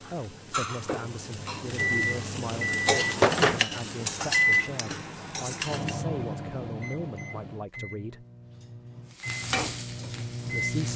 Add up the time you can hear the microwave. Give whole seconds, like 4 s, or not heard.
9 s.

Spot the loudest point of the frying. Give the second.
3 s.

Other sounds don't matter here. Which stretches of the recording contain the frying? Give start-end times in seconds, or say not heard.
0.0-6.0, 9.1-10.9.